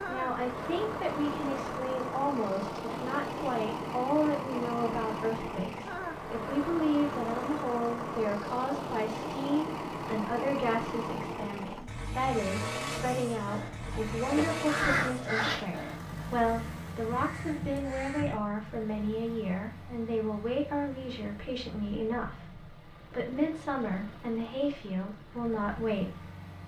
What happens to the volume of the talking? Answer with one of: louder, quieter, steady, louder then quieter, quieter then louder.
steady.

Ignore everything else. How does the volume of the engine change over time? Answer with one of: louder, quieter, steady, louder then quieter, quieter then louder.
quieter.